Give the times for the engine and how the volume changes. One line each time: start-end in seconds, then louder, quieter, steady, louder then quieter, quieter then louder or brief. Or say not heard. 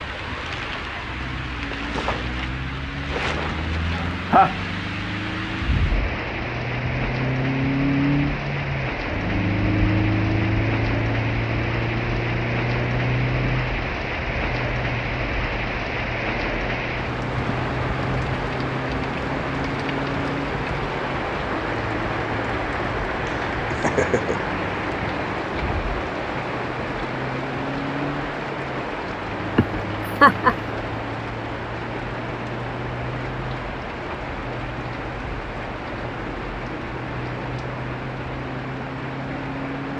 0.0-39.9 quieter.